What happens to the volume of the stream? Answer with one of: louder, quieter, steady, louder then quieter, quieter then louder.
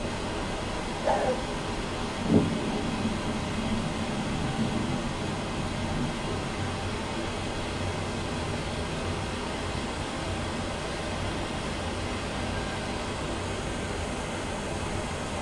steady.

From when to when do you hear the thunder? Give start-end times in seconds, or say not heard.
2.2-6.2.